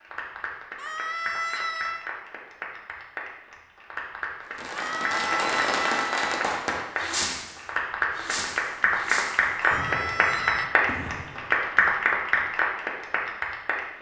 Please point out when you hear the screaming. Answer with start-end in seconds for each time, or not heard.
0.8-2.1, 4.7-6.2, 9.6-10.7.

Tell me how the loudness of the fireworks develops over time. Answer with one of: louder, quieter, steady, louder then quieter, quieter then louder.
quieter.